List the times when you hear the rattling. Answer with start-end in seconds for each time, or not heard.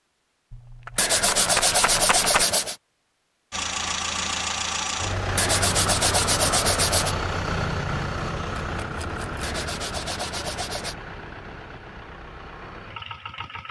0.5-2.5, 8.6-9.4.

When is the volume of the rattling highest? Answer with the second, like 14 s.
2 s.